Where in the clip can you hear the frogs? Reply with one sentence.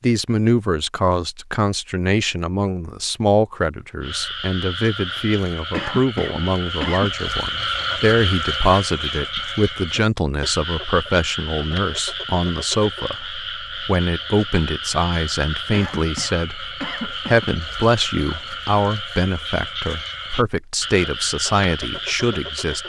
You can hear the frogs from 4.0 to 22.8 s.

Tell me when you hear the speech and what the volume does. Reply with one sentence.
The speech can be heard from 0.0 to 22.8 s, at a steady volume.